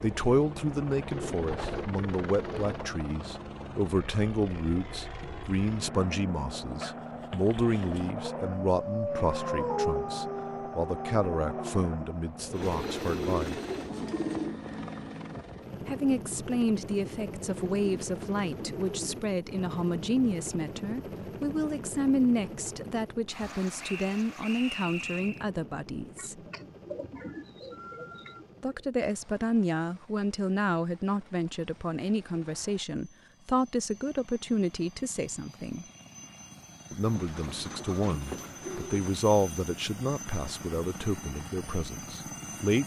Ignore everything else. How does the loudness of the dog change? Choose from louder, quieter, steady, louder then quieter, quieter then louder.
louder then quieter.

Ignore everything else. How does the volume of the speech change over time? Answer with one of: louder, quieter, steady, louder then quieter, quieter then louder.
steady.